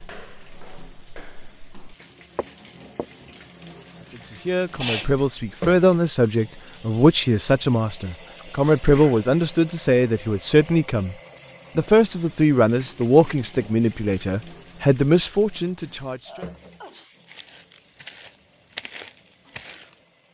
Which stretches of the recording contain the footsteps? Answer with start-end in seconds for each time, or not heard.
0.0-3.4, 17.2-20.0.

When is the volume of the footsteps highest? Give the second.
19 s.